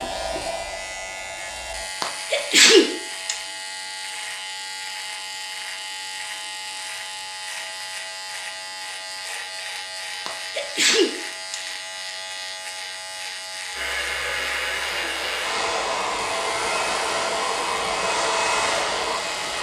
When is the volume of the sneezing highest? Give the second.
3 s.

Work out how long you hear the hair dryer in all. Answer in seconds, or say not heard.
8 s.